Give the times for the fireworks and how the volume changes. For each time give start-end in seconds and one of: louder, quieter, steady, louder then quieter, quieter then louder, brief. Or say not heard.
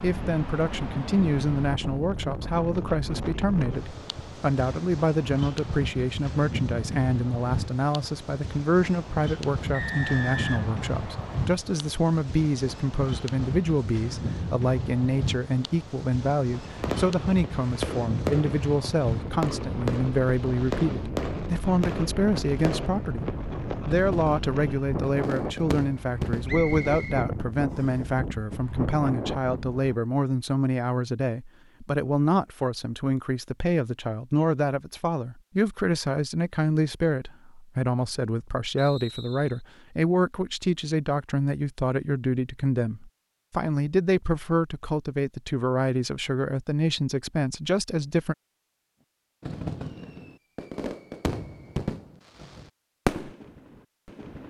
16.6-27.6 steady
49.4-54.4 louder then quieter.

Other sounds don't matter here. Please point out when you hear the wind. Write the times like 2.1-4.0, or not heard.
0.0-29.9.